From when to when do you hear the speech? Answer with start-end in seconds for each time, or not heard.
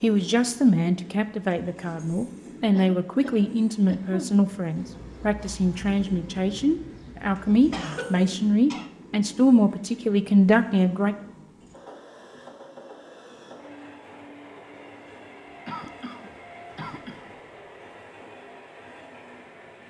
0.0-11.2.